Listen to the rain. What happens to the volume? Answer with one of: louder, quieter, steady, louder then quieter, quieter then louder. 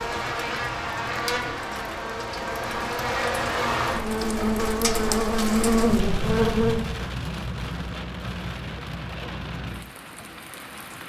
louder then quieter.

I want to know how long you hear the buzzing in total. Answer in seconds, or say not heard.
7 s.